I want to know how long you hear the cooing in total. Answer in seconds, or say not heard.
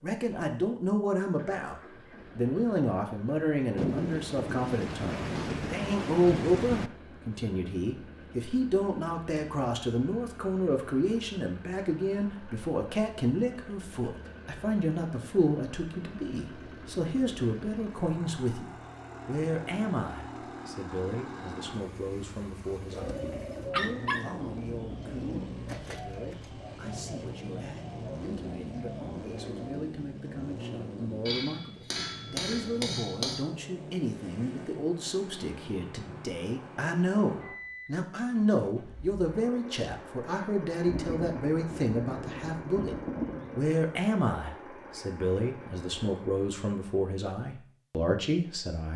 7 s.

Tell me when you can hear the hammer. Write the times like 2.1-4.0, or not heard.
31.2-33.5.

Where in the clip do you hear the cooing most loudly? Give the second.
24 s.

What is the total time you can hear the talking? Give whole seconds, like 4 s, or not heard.
48 s.